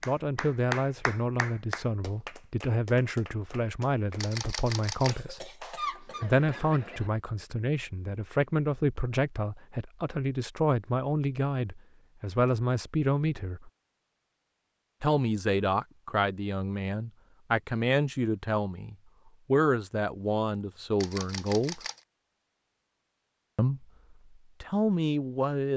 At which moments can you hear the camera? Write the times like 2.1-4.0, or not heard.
4.2-5.2, 21.0-22.0.